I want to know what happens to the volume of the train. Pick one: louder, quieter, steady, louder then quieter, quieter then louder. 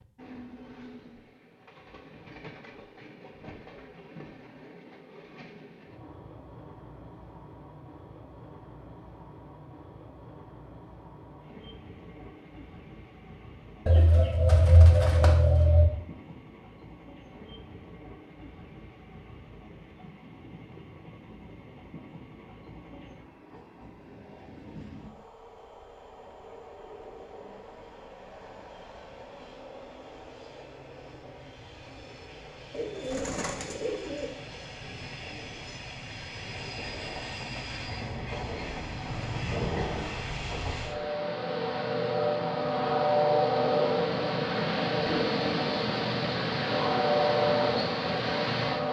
louder.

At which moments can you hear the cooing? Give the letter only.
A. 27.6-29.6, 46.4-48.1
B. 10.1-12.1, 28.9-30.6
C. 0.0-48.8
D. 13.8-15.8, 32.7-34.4
D.